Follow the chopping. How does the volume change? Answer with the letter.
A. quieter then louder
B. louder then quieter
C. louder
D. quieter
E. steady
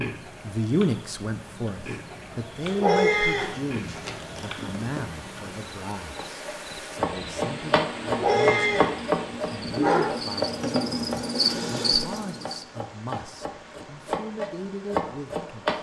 A.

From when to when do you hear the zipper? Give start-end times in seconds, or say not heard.
3.4-5.0.